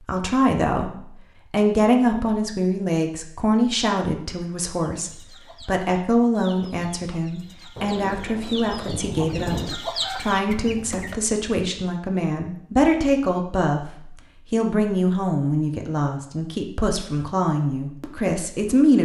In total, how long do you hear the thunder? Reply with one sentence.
You can hear the thunder for 2 seconds altogether.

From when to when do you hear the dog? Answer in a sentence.
The dog can't be heard in this clip.